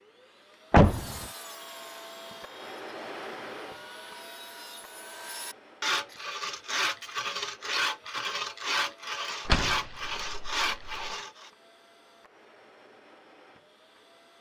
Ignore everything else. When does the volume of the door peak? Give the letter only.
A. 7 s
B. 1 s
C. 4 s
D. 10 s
B.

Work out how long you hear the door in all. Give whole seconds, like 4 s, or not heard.
2 s.